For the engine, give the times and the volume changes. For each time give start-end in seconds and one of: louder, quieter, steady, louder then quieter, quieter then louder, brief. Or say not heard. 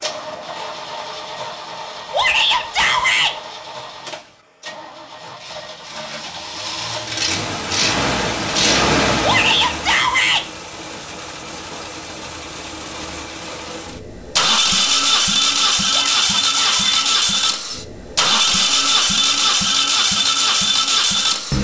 0.0-21.5 louder.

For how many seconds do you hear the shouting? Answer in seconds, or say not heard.
4 s.